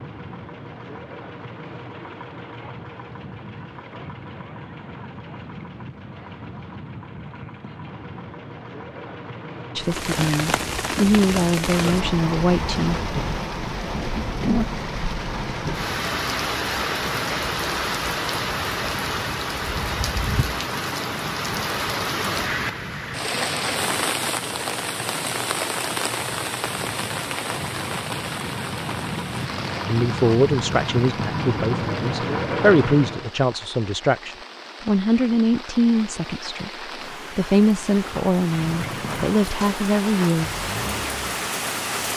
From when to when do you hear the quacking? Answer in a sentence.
You can't hear the quacking here.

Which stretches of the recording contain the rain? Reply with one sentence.
The rain can be heard from 9.8 to 42.1 s.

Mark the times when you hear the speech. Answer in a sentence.
The speech can be heard from 9.8 to 13.1 s, from 29.9 to 36.7 s and from 37.4 to 40.5 s.